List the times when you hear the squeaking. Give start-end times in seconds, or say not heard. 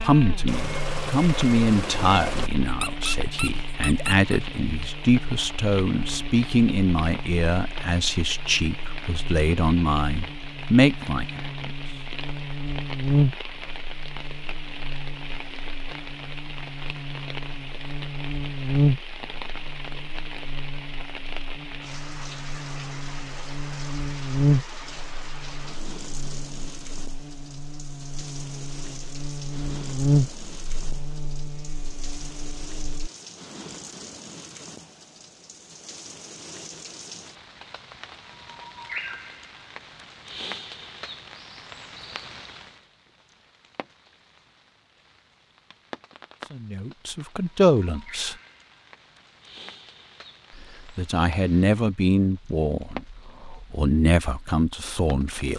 2.6-4.4.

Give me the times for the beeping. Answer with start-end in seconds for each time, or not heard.
0.5-2.5.